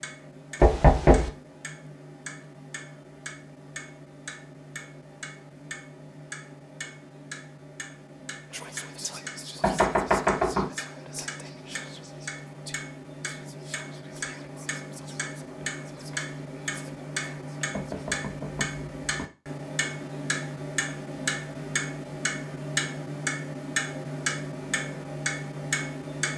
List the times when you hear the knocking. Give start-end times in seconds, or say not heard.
0.6-1.3, 9.6-10.7, 17.7-19.2.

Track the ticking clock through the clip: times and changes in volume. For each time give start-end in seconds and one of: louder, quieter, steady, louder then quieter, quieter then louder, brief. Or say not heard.
0.0-26.3 louder.